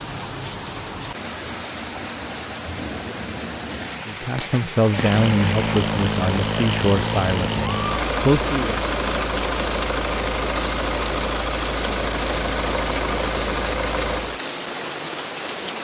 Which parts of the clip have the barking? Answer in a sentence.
You can't hear the barking here.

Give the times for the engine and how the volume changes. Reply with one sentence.
You can hear the engine from 4.8 to 14.4 s, at a steady volume.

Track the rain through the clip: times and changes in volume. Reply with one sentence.
You can hear the rain from 0.0 to 15.7 s, at a steady volume.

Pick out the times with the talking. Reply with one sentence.
The talking can be heard from 4.0 to 8.8 s.